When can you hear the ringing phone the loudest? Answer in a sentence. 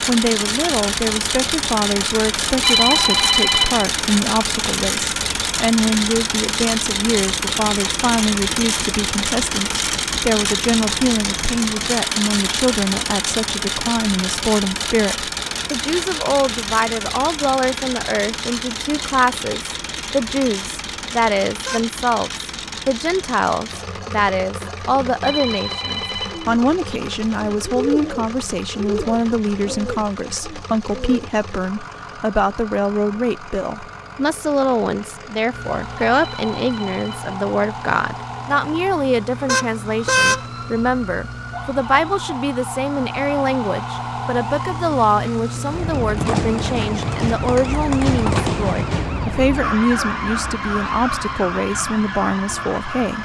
The volume of the ringing phone peaks at 3 seconds.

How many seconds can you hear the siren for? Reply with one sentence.
The siren can be heard for 18 seconds in total.